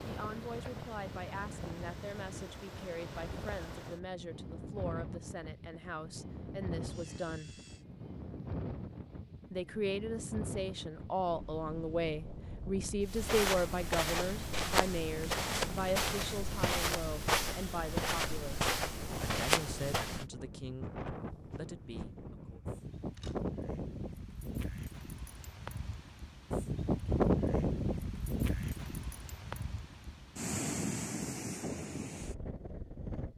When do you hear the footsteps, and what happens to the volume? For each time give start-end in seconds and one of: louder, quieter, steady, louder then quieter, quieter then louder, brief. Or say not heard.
13.1-20.2 steady.